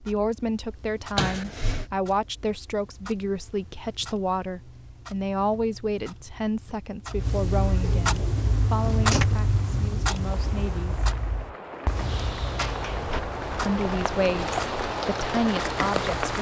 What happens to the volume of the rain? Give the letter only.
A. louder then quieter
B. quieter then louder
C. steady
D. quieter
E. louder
E.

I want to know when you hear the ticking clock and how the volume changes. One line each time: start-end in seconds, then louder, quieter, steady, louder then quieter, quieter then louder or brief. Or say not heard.
0.0-16.3 louder then quieter.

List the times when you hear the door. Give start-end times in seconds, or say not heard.
1.1-1.9, 7.8-9.2, 11.9-13.2.